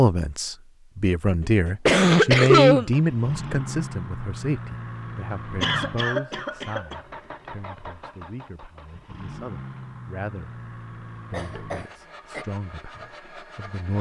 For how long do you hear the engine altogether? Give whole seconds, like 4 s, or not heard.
11 s.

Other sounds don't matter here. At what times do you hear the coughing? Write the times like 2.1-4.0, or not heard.
1.9-2.9, 5.6-7.0, 11.3-12.4.